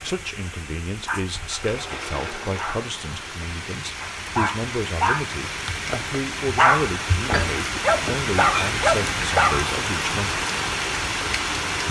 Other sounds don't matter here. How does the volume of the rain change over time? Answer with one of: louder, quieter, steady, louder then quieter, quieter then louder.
louder.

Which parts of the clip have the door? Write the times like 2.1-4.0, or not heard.
1.3-2.8, 7.2-8.2.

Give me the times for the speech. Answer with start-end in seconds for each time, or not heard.
0.0-10.4.